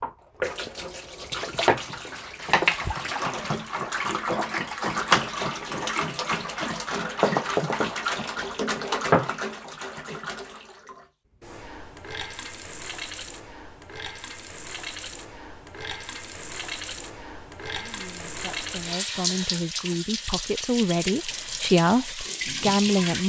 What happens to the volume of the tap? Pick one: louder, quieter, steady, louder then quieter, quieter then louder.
quieter then louder.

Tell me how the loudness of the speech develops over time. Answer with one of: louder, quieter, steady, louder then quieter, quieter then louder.
louder.